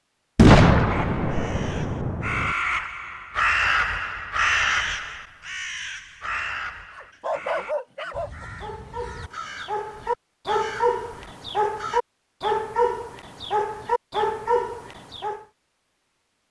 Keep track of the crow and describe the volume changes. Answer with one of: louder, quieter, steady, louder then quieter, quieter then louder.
louder then quieter.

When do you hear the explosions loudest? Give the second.
1 s.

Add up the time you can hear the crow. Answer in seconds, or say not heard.
11 s.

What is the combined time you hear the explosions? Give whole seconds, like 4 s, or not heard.
2 s.